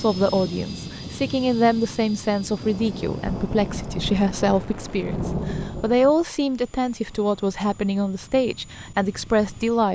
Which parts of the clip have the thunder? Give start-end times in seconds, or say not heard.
3.2-6.2.